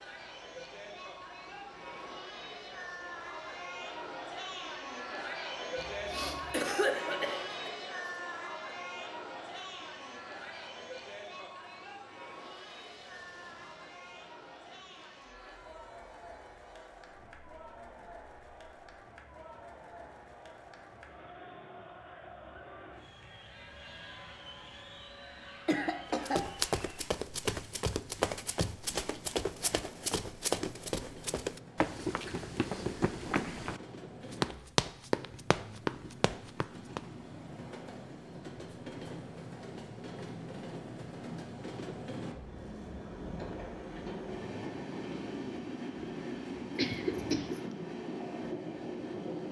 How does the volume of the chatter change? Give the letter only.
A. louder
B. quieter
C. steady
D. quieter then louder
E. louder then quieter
B.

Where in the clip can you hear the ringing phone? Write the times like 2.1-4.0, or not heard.
not heard.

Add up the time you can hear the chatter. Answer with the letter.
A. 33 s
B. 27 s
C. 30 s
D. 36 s
B.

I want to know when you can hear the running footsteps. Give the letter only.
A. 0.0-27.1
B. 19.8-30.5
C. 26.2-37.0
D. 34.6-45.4
C.